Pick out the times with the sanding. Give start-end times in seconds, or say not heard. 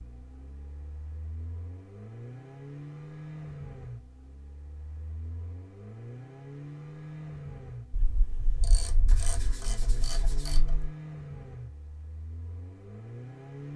9.1-10.6.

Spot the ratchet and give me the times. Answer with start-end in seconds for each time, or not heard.
7.9-10.9.